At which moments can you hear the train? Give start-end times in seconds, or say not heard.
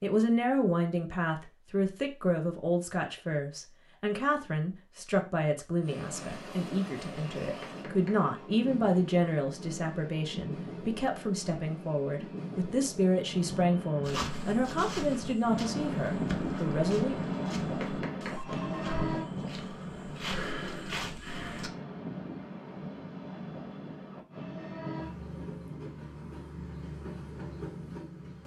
5.8-28.4.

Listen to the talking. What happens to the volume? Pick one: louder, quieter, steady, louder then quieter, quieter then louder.
steady.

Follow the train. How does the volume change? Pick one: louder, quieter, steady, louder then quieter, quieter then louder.
louder then quieter.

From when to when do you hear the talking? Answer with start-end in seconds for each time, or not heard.
0.0-17.2.